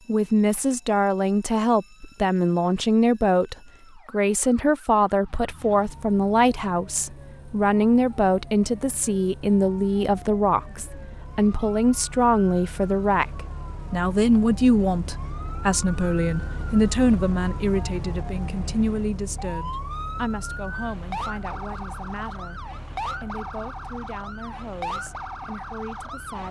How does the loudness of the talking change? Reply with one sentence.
The volume of the talking goes down.